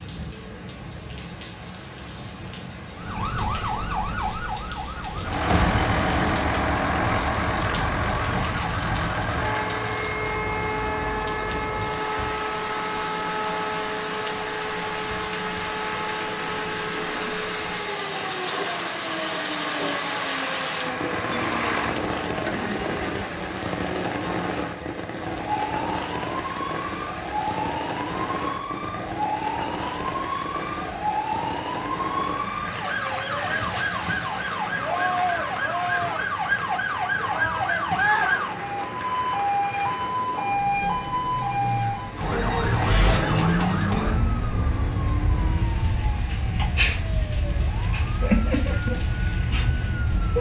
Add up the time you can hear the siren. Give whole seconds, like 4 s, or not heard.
47 s.